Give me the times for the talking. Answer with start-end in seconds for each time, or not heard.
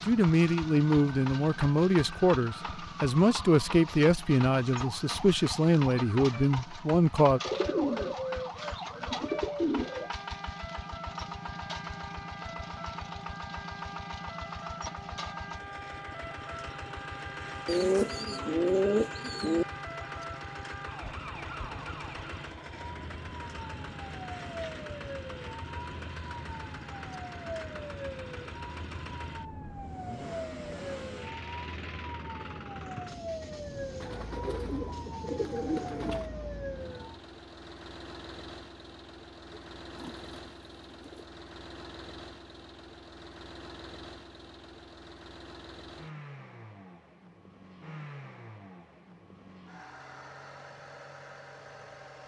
0.1-7.4.